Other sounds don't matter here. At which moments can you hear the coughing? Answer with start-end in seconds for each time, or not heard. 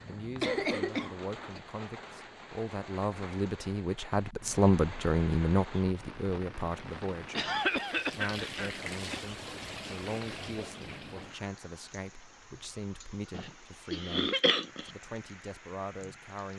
0.4-1.6, 7.3-9.2, 13.3-14.9.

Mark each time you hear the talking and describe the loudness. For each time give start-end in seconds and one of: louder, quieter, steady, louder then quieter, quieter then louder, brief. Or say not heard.
0.1-16.5 louder then quieter.